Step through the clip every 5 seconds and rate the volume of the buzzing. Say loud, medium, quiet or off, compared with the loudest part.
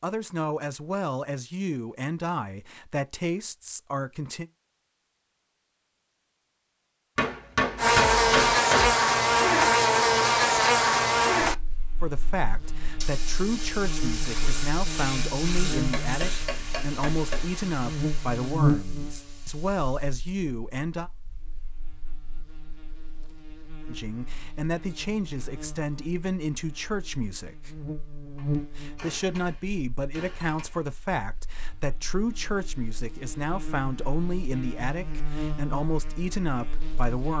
off, loud, medium, medium, quiet, quiet, quiet, quiet.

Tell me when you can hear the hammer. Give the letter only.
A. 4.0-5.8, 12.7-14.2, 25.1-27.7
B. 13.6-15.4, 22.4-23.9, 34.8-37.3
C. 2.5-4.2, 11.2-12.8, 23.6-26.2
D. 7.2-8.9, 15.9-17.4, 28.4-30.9
D.